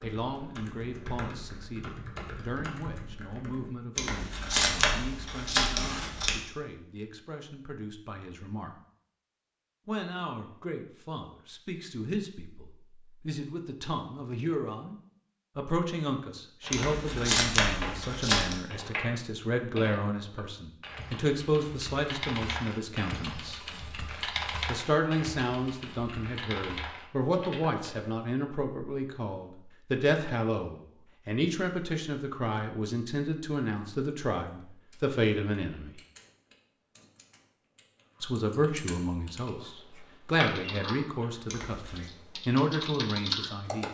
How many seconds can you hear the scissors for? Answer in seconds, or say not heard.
5 s.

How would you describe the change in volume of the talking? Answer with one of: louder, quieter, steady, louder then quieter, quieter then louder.
louder.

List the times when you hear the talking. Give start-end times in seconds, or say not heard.
0.0-8.8, 9.8-14.9, 15.6-23.6, 24.6-36.0, 38.2-43.8.